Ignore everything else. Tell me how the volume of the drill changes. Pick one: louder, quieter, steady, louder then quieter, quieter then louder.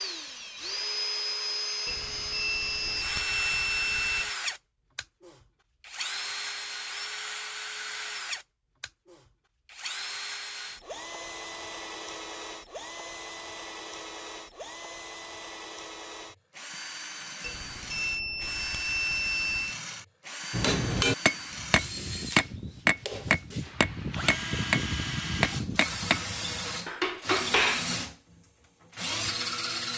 quieter then louder.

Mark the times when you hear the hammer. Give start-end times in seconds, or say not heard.
20.5-27.9.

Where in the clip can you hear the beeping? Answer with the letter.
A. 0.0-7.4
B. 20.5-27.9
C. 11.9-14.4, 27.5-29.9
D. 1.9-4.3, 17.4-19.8
D.